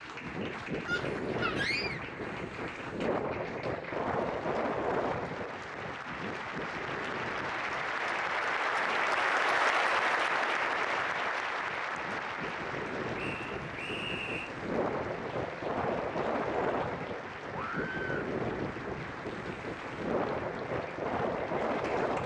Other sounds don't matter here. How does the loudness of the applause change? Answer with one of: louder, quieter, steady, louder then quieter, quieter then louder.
louder then quieter.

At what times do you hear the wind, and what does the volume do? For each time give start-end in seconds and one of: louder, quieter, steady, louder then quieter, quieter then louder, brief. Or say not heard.
0.0-22.2 quieter then louder.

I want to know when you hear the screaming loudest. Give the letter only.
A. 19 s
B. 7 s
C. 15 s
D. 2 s
D.